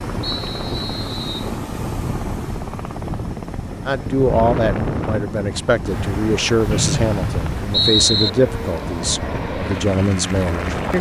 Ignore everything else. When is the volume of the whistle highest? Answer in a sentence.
The volume of the whistle peaks at 8 seconds.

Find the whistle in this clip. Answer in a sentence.
You can hear the whistle from 0.2 to 1.5 s and from 6.7 to 8.3 s.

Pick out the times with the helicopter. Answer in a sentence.
You can hear the helicopter from 0.0 to 10.9 s.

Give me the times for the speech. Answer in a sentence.
You can hear the speech from 3.9 to 10.9 s.